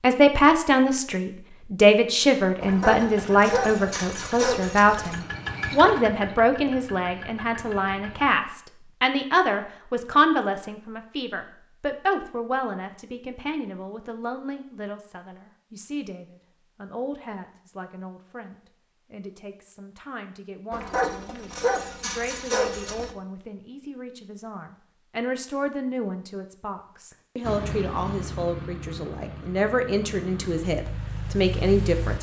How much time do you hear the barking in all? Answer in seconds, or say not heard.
5 s.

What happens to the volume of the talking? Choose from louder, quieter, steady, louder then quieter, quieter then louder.
quieter then louder.